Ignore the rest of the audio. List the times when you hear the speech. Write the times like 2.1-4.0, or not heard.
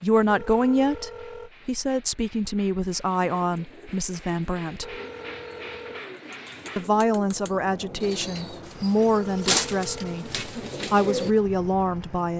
0.0-5.0, 6.8-12.3.